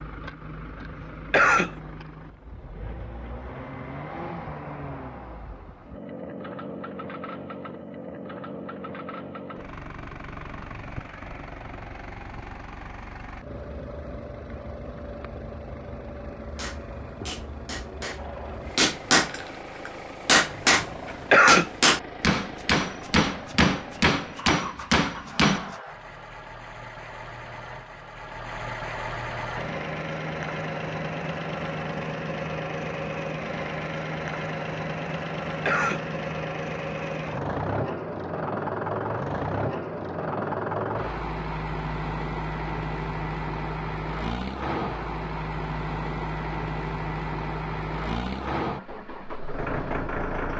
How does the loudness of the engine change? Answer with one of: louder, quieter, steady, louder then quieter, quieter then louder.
louder.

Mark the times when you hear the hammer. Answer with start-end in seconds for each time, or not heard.
16.6-25.8.